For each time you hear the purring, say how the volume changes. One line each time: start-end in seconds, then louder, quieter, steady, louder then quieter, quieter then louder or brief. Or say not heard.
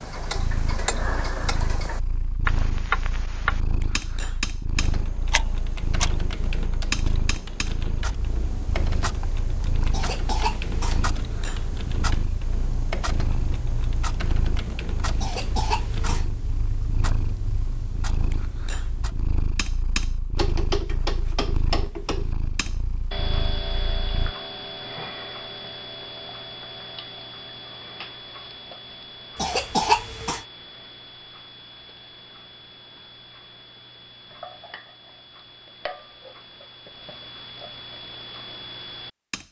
0.1-24.4 steady.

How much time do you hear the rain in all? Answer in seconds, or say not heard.
not heard.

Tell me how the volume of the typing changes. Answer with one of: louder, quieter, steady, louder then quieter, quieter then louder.
steady.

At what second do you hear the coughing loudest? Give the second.
30 s.